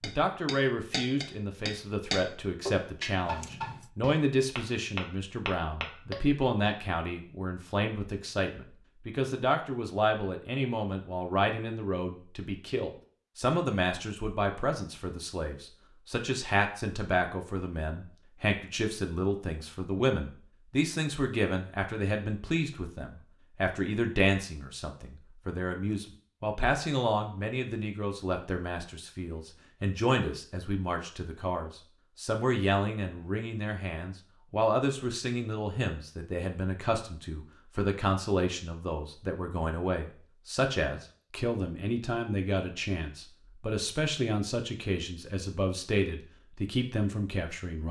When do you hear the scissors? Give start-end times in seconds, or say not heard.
3.2-3.9.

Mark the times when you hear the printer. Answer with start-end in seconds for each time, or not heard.
not heard.